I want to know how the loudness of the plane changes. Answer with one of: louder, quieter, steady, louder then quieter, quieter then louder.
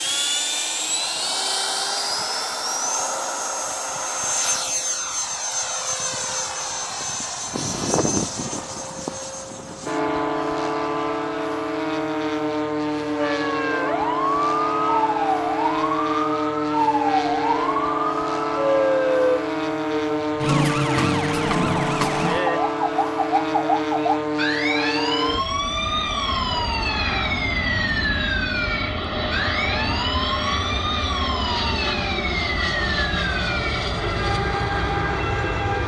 steady.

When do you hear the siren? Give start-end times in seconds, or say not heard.
13.2-35.8.